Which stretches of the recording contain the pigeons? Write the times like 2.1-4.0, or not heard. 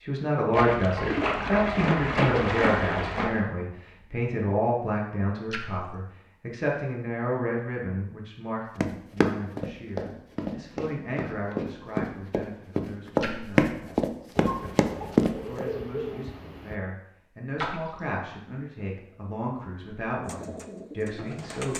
14.3-16.8, 20.2-21.7.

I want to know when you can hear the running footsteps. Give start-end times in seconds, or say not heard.
8.8-15.7.